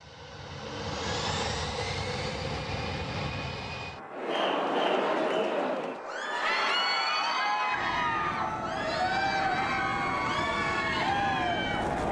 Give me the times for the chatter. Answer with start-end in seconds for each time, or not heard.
4.1-12.0.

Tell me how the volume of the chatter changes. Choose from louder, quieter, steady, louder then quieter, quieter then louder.
steady.